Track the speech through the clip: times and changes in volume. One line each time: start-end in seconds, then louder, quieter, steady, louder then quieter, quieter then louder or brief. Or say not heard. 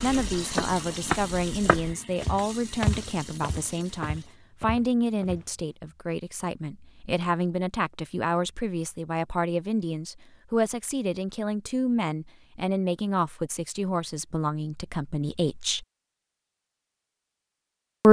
0.0-15.8 steady.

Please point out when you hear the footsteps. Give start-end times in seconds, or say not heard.
0.1-5.5.